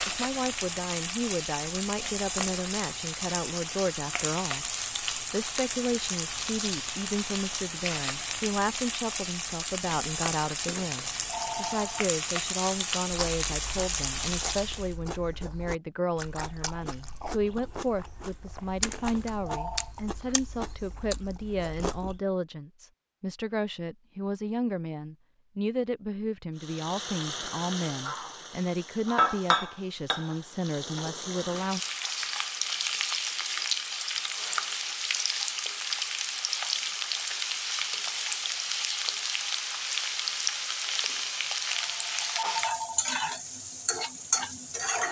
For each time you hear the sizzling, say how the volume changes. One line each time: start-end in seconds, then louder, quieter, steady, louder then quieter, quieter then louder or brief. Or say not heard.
0.0-14.9 steady
26.6-45.0 steady.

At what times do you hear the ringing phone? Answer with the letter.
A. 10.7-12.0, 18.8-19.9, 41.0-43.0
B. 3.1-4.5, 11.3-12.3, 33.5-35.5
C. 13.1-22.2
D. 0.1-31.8
A.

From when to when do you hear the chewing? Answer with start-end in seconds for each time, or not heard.
13.1-22.2.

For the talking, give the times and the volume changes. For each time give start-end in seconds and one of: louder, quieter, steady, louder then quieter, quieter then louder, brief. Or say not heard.
0.1-31.8 steady.